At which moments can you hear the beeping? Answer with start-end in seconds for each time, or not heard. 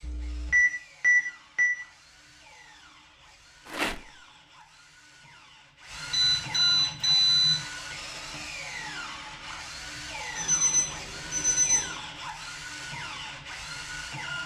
0.0-1.8, 6.1-7.6, 10.3-11.9.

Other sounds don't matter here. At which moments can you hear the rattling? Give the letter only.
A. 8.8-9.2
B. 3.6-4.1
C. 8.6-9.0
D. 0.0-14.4
B.